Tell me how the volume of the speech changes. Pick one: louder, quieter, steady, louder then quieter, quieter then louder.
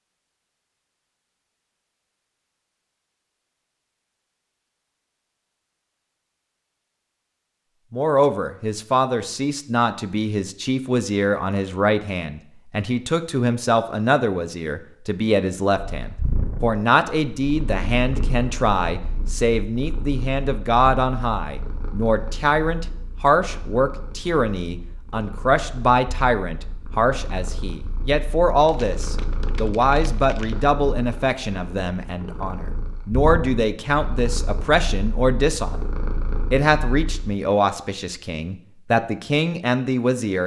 steady.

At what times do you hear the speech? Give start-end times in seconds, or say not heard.
7.9-35.9, 36.5-40.4.